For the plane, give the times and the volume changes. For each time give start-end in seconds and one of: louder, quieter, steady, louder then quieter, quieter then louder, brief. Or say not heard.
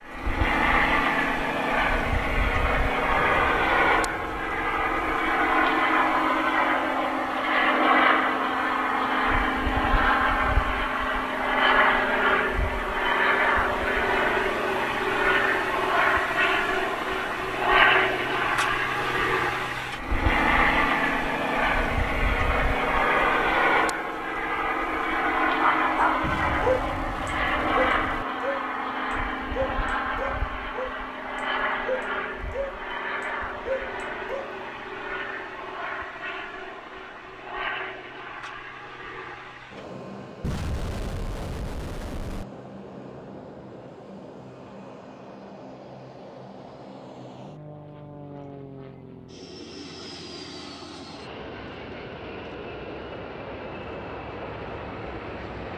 0.0-55.7 quieter.